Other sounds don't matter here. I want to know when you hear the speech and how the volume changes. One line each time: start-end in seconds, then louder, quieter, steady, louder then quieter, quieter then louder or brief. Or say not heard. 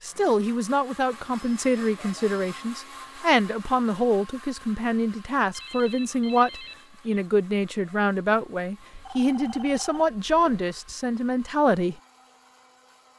0.0-11.9 steady.